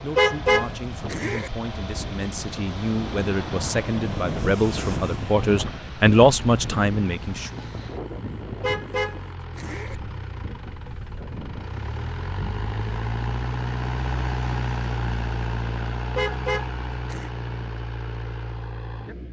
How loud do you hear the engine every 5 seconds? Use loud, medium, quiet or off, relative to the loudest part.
medium, medium, loud, loud.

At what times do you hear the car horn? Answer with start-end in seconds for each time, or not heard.
0.1-1.5, 8.6-9.9, 16.1-17.3.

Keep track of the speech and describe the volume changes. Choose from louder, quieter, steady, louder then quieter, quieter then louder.
louder.